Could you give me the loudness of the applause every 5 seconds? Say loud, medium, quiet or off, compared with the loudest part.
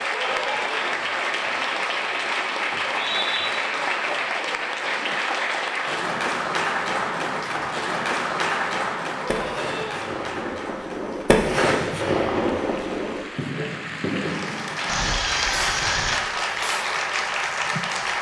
loud, loud, medium, loud.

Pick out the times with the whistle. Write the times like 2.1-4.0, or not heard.
2.7-3.5.